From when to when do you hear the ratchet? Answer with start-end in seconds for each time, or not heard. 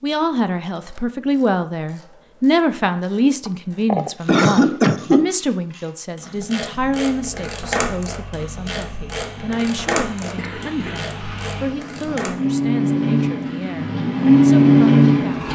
0.7-12.3.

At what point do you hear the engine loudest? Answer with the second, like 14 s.
15 s.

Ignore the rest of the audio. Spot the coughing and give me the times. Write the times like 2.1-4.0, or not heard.
3.5-5.3, 10.3-12.0.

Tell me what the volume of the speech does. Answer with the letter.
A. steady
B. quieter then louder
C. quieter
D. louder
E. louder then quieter
C.